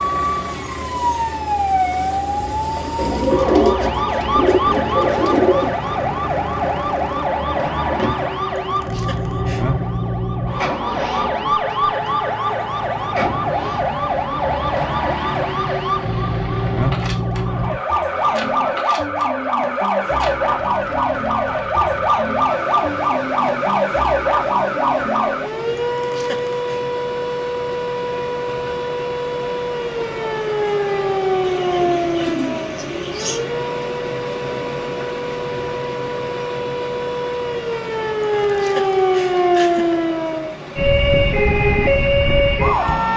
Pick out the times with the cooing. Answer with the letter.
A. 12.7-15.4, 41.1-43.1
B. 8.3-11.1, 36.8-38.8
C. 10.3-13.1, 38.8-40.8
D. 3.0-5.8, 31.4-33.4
D.